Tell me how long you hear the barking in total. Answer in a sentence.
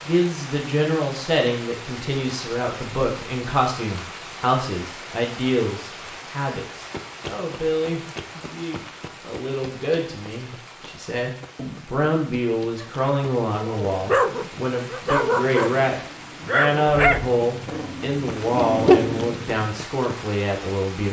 The barking can be heard for 7 seconds in total.